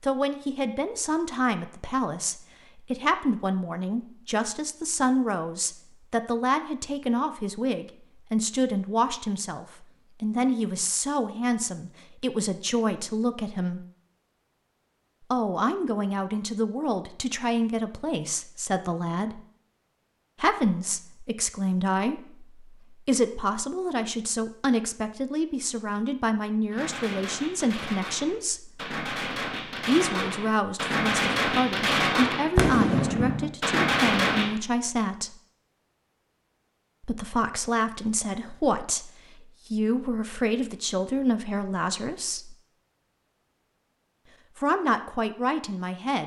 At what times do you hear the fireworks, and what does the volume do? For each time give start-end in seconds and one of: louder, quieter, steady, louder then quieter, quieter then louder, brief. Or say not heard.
26.7-34.5 louder.